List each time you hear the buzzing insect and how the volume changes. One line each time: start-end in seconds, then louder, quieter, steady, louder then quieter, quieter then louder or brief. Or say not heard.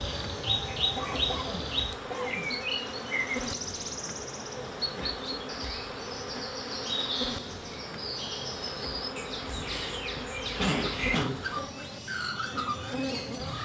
0.0-13.5 steady.